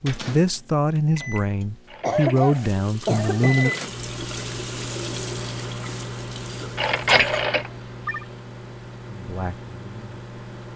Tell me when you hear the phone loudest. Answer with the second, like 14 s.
7 s.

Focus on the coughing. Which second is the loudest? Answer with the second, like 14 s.
2 s.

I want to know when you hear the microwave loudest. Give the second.
4 s.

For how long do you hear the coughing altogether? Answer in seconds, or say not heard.
3 s.